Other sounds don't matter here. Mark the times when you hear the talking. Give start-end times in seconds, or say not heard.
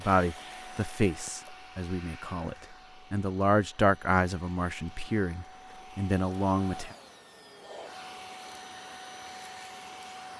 0.0-7.0.